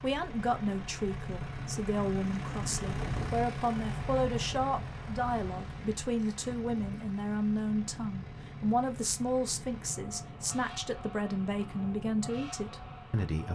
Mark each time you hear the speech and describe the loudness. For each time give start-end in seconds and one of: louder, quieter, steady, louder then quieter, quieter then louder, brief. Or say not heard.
0.0-13.4 steady.